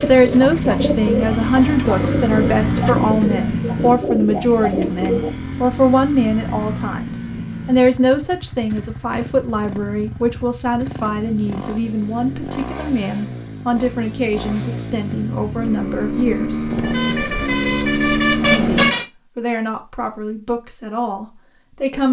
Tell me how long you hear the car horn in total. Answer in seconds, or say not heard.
2 s.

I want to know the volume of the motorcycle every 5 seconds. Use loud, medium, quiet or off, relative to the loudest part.
loud, medium, medium, loud, off.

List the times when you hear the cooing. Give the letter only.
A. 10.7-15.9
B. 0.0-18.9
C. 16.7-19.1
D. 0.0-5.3
D.